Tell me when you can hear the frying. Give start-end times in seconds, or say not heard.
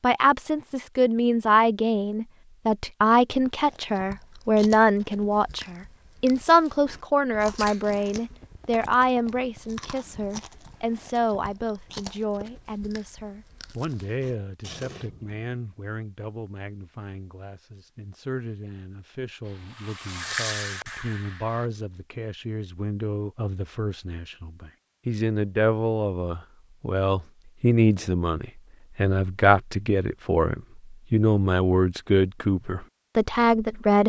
19.4-21.7.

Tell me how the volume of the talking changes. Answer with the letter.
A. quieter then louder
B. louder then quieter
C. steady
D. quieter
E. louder
A.